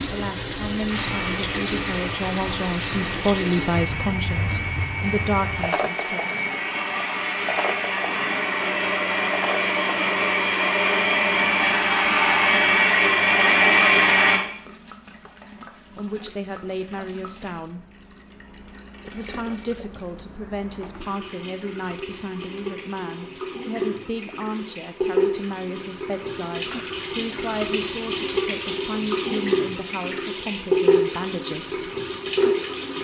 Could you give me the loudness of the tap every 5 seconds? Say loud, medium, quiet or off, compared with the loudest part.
medium, medium, quiet, quiet, medium, loud, loud.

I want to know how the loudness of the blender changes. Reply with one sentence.
The volume of the blender goes up.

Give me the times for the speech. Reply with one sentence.
The speech can be heard from 0.0 to 6.4 s, from 15.6 to 17.9 s and from 19.1 to 31.9 s.